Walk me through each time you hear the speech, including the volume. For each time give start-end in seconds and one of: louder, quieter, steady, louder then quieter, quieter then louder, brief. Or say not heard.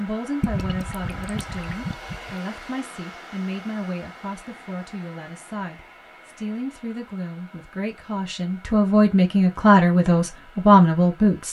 0.0-11.4 louder.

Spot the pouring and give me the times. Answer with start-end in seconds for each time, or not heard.
0.4-2.4.